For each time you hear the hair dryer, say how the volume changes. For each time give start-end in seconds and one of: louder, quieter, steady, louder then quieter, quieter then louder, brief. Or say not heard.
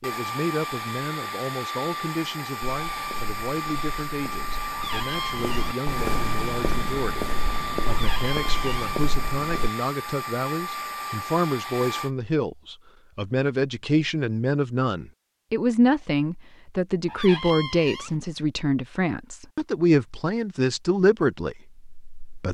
0.0-12.1 steady.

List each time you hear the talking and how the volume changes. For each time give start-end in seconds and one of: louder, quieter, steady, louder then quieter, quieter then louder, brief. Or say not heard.
0.0-22.4 louder.